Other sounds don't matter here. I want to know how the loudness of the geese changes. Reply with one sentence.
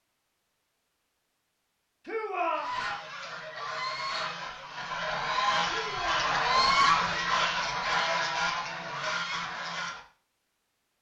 The volume of the geese goes up, then down.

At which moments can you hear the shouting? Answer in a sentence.
The shouting can be heard from 2.0 to 2.7 s and from 5.7 to 6.5 s.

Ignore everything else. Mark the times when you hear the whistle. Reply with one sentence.
You can't hear the whistle here.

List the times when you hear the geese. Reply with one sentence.
The geese can be heard from 2.5 to 10.0 s.